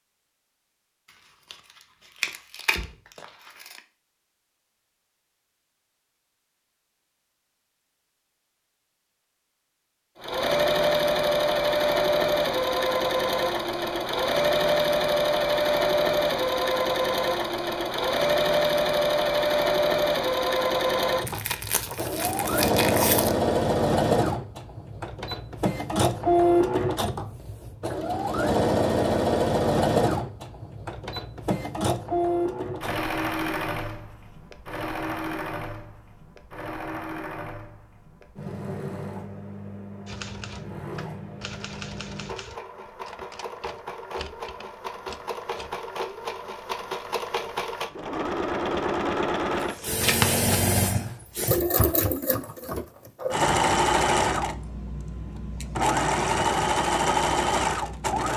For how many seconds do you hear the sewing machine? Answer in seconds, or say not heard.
48 s.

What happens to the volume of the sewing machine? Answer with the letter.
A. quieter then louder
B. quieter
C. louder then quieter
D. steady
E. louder
A.